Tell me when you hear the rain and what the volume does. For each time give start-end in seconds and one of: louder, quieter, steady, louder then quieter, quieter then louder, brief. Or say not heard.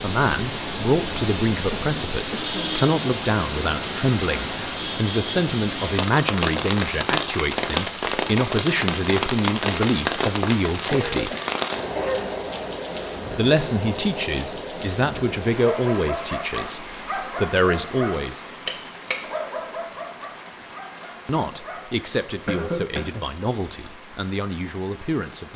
0.0-25.5 quieter.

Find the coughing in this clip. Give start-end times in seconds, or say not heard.
1.7-2.9, 10.8-12.3, 22.4-23.2.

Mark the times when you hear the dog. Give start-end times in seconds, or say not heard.
15.6-22.1.